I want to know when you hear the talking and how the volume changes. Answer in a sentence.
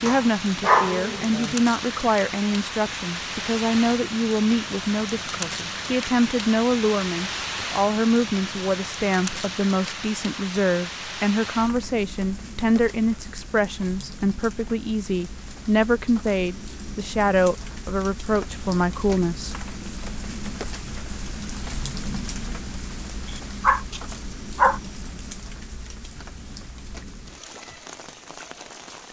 You can hear the talking from 0.0 to 19.6 s, at a steady volume.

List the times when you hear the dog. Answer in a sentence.
You can hear the dog from 0.1 to 1.6 s and from 23.2 to 25.1 s.